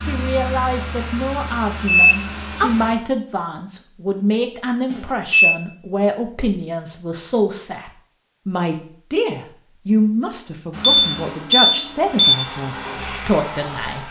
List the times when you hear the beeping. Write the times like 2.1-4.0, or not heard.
1.9-2.7, 4.9-5.5, 11.0-12.3.